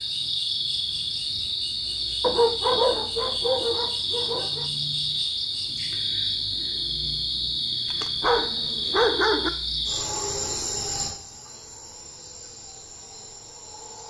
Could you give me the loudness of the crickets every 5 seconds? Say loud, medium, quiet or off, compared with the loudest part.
loud, loud, medium.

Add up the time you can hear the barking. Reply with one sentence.
The barking can be heard for 4 seconds in total.